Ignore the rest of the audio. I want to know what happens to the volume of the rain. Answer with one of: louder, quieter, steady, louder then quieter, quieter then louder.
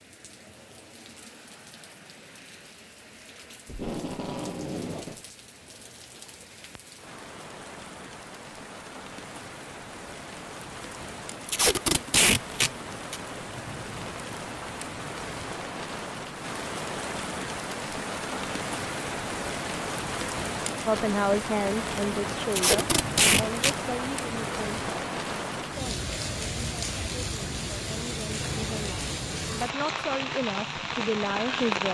louder.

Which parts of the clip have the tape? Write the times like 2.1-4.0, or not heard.
3.6-5.2, 11.4-13.2, 22.5-23.8.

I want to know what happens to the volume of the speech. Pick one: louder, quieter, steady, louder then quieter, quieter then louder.
quieter then louder.